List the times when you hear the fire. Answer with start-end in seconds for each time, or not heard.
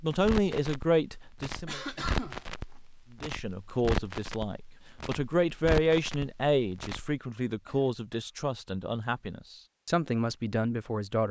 0.1-7.2.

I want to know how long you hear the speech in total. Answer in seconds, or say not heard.
10 s.